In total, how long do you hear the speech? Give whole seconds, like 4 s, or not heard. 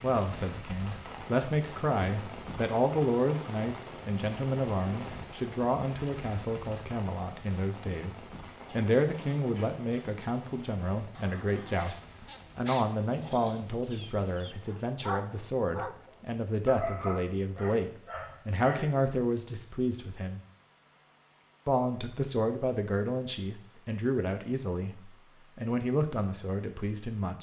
26 s.